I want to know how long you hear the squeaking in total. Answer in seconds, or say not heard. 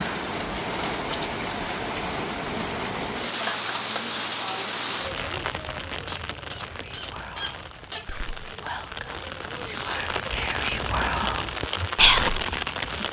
2 s.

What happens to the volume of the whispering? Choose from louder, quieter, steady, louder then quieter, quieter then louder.
louder.